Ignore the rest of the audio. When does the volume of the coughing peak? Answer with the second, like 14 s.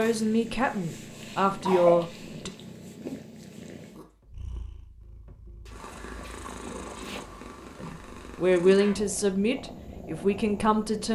2 s.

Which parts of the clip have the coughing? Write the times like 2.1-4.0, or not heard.
0.8-2.0, 6.2-7.2.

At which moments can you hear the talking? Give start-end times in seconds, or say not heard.
0.0-2.5, 7.8-11.0.